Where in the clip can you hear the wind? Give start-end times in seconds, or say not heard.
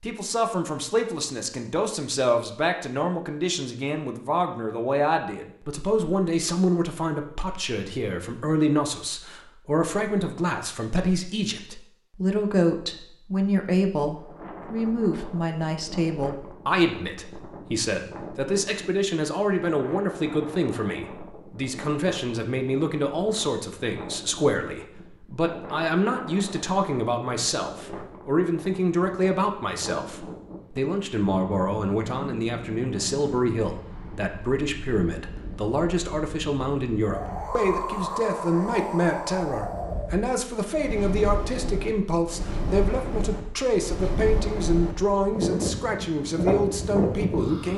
14.2-47.7.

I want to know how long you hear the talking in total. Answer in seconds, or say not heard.
48 s.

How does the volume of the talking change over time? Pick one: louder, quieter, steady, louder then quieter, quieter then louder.
steady.